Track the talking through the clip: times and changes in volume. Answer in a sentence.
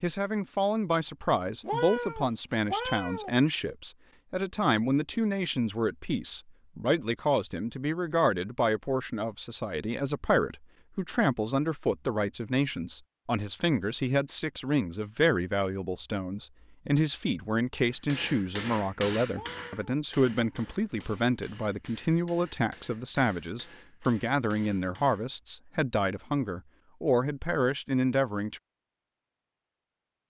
You can hear the talking from 0.0 to 28.6 s, at a steady volume.